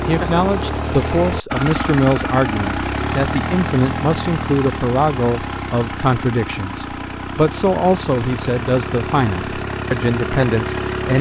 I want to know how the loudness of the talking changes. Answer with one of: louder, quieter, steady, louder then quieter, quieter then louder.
steady.